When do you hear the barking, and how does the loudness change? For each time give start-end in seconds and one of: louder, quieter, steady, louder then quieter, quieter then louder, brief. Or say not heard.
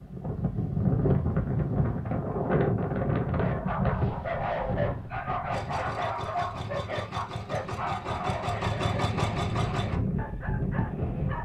3.2-11.4 quieter.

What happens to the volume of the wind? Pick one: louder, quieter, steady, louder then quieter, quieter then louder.
quieter then louder.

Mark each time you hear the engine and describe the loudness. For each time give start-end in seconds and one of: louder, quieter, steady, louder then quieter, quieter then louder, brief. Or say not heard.
5.5-9.9 louder.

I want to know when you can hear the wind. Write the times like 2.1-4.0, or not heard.
0.0-11.4.